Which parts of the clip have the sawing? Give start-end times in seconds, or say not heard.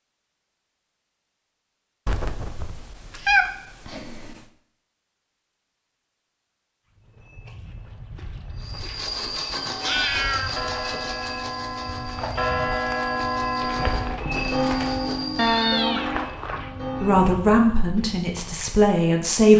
8.6-15.7.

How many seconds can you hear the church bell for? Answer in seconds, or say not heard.
8 s.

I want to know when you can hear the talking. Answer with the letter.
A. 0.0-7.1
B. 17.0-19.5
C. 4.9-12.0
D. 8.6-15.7
B.